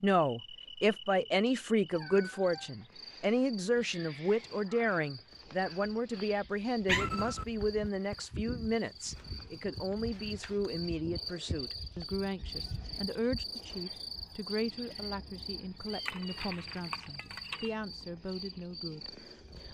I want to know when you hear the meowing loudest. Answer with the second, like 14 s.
7 s.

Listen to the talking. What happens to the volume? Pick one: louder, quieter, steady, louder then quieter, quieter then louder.
quieter.